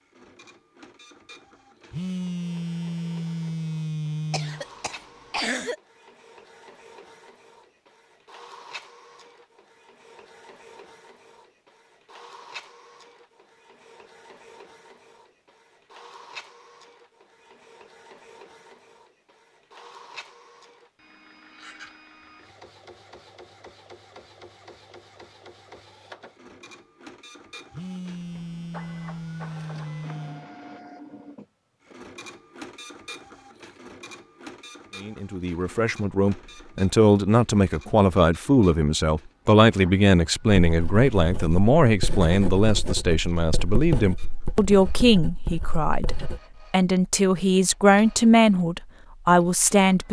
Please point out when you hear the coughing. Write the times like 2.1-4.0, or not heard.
4.3-5.8.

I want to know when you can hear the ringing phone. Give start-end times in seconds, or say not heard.
1.9-4.7, 27.7-30.5.